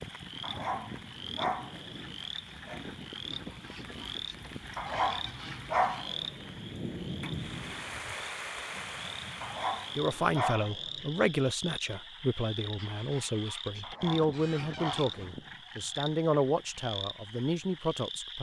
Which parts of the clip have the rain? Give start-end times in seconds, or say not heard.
0.0-10.4.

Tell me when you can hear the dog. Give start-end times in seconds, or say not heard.
0.4-2.9, 4.8-6.5, 9.4-11.1, 13.8-15.5.